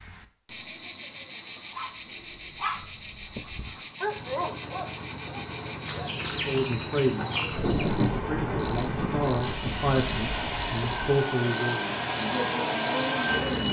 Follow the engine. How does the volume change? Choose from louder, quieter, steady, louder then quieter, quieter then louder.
louder.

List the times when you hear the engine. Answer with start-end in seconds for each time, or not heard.
4.0-13.6.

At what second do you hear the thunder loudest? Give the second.
8 s.